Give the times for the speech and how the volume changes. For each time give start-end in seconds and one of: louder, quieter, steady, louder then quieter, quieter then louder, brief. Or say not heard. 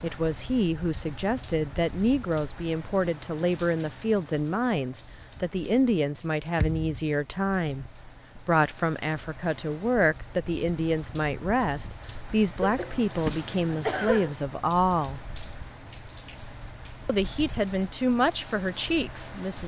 0.0-15.2 steady
17.1-19.6 brief.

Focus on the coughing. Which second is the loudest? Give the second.
14 s.